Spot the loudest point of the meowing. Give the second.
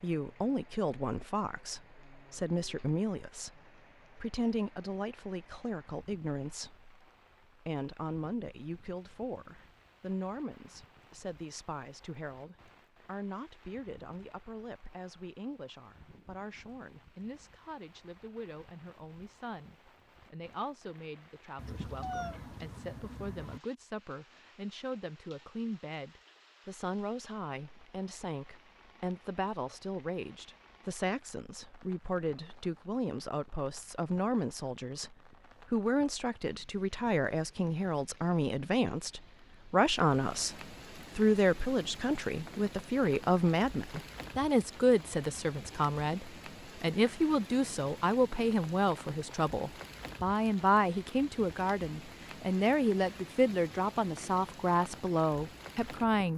22 s.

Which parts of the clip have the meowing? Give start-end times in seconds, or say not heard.
21.6-23.6.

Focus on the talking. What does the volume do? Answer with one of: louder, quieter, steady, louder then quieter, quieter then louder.
quieter then louder.